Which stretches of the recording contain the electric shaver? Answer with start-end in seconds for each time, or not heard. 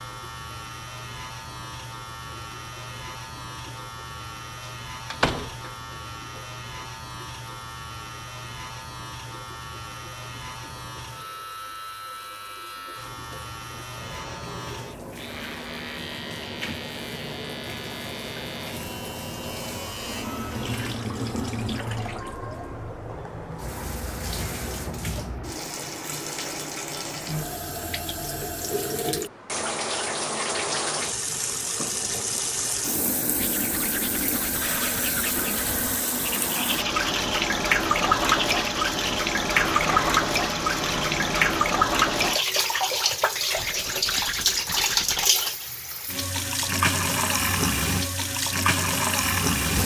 0.0-20.9.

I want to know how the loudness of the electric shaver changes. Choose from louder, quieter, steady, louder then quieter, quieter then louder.
steady.